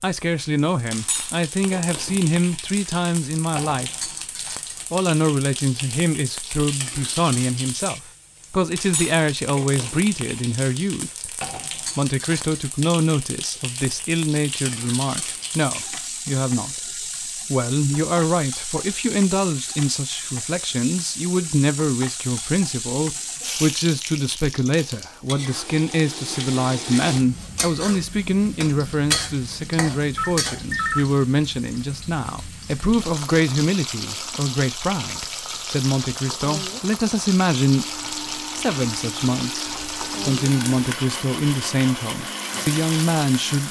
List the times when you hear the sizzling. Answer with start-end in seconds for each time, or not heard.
0.0-43.6.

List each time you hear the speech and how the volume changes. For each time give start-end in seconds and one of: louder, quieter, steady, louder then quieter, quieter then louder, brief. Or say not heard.
0.0-4.1 steady
4.9-16.9 steady
17.5-43.6 steady.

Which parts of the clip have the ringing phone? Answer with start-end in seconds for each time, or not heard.
30.1-31.1.